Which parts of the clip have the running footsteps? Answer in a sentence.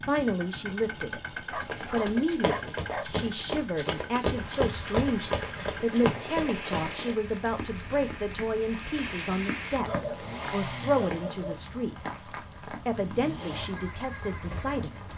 You can hear the running footsteps from 1.6 to 7.2 s.